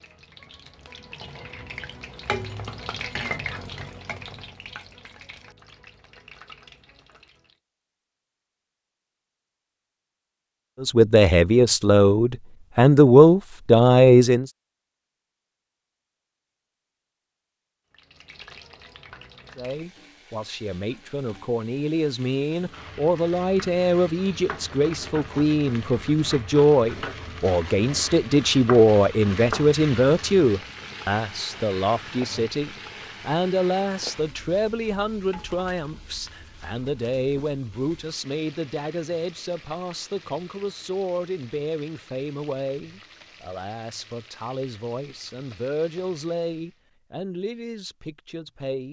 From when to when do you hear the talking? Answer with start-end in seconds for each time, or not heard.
10.8-14.4, 19.6-48.8.